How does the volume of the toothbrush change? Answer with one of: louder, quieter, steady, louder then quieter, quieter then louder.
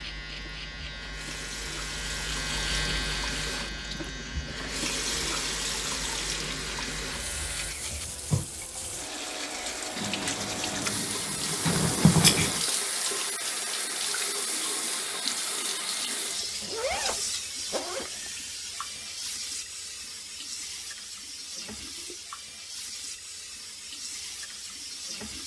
quieter then louder.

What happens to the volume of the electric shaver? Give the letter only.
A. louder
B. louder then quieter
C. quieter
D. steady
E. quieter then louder
B.